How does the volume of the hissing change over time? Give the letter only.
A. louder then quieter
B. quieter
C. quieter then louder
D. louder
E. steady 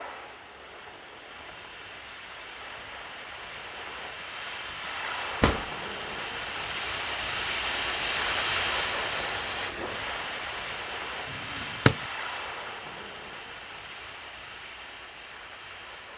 A.